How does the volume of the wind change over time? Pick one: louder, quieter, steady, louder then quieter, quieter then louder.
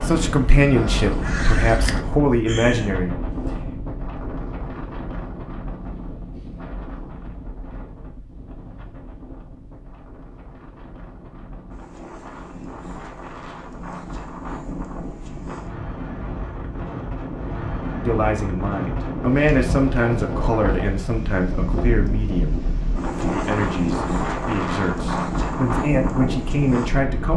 quieter then louder.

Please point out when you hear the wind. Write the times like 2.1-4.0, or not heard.
0.0-27.3.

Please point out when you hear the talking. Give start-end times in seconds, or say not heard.
0.0-3.5, 18.0-27.3.